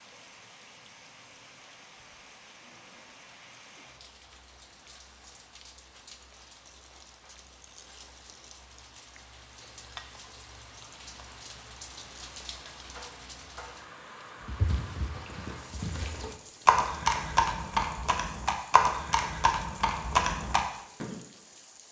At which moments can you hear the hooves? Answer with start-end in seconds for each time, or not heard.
14.4-21.2.